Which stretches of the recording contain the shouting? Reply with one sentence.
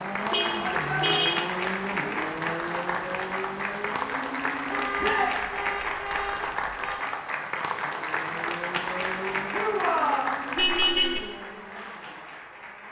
The shouting can be heard from 0.6 to 1.2 s, from 5.0 to 5.4 s and from 9.5 to 10.3 s.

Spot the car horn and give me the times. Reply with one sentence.
The car horn can be heard from 0.3 to 1.4 s, from 4.7 to 7.0 s and from 10.6 to 11.2 s.